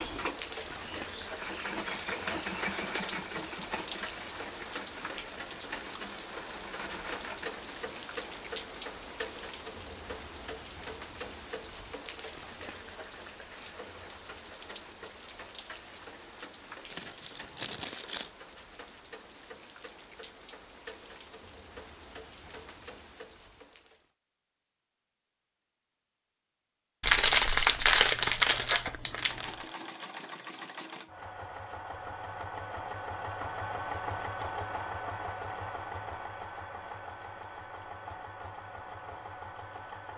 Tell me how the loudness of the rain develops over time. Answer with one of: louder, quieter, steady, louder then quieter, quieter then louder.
quieter.